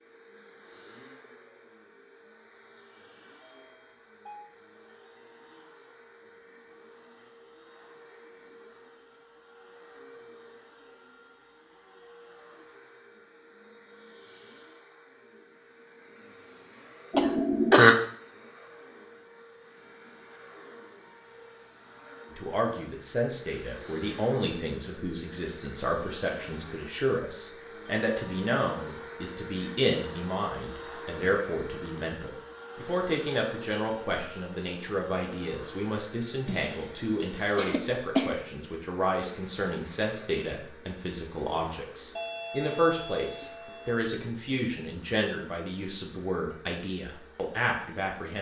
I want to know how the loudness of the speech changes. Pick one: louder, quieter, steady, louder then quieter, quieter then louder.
steady.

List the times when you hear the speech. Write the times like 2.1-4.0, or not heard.
22.3-48.3.